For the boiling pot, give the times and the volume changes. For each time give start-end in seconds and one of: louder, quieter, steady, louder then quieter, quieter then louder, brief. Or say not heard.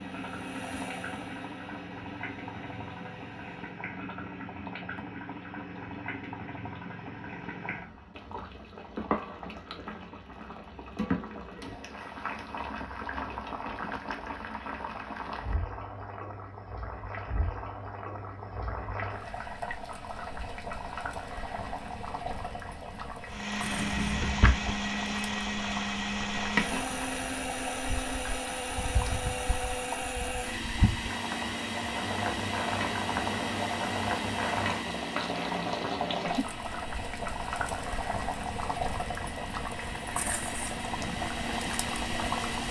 0.0-42.6 louder.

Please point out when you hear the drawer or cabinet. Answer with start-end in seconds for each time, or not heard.
23.6-24.8.